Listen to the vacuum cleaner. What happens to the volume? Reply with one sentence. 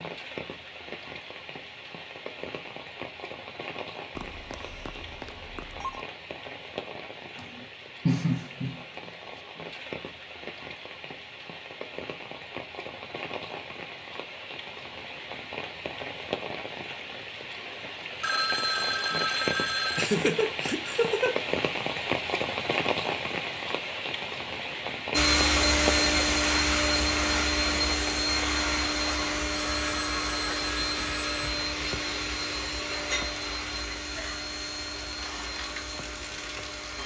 The loudness of the vacuum cleaner goes down.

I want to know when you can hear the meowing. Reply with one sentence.
You can't hear the meowing here.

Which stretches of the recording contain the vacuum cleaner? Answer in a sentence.
You can hear the vacuum cleaner from 25.1 to 37.0 s.